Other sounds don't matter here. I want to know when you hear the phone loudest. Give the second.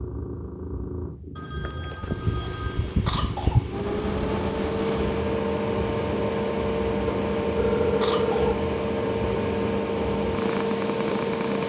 8 s.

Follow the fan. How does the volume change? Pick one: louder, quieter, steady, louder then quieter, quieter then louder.
steady.